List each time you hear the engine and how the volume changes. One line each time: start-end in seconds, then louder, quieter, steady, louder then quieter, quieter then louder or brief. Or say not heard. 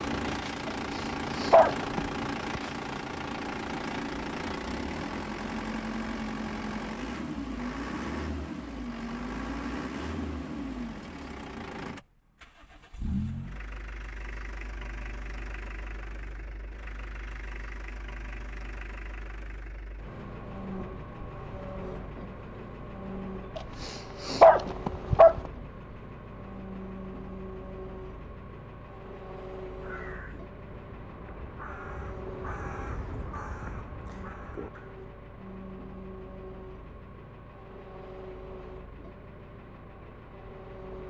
0.0-41.0 quieter.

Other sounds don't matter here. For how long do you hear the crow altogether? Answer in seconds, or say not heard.
5 s.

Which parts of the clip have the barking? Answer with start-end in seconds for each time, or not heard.
0.9-2.1, 23.6-25.4.